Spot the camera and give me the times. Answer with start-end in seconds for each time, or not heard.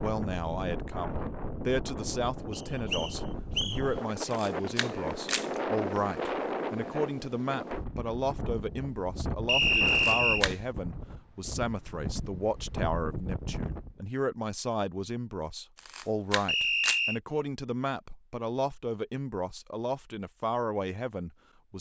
4.3-5.5, 9.8-10.6, 15.8-17.0.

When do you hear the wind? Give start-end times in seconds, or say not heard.
0.0-14.1.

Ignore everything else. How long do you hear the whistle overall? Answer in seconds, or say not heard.
3 s.